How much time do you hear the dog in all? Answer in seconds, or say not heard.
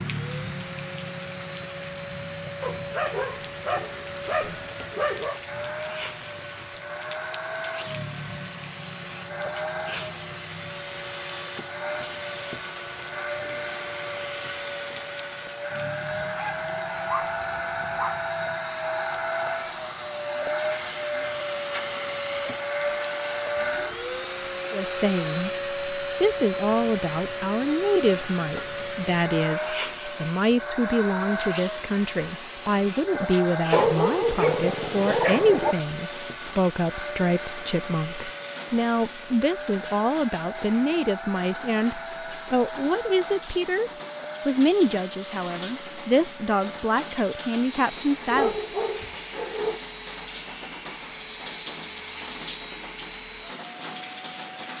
8 s.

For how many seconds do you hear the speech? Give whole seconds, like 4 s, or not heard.
24 s.